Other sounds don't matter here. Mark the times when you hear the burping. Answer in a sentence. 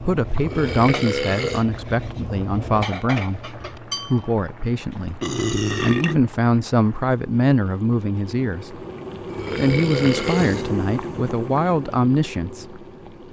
You can hear the burping from 0.4 to 1.6 s, from 5.2 to 6.3 s and from 9.2 to 10.7 s.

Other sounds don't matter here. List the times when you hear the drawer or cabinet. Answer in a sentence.
You can't hear the drawer or cabinet here.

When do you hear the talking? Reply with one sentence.
You can hear the talking from 0.0 to 5.2 s, from 5.8 to 8.8 s and from 9.6 to 12.8 s.